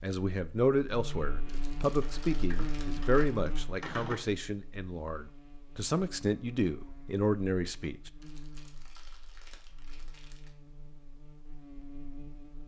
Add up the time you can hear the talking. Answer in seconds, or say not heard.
8 s.